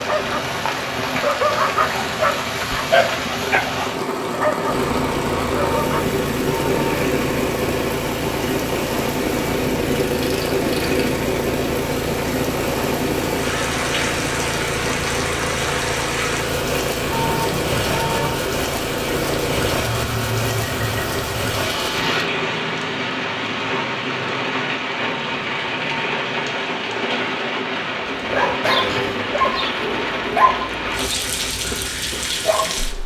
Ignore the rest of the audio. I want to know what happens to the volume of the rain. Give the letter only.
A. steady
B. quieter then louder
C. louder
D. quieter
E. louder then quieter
A.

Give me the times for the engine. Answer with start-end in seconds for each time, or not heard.
4.7-22.2.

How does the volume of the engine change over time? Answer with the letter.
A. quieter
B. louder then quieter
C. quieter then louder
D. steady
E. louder
D.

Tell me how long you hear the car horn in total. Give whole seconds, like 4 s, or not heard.
4 s.